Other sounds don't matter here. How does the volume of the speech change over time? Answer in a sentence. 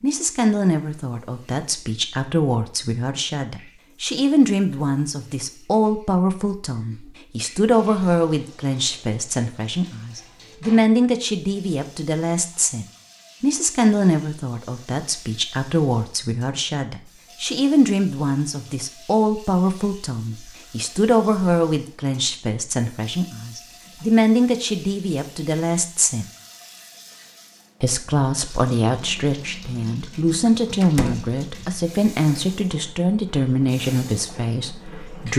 The loudness of the speech stays about the same.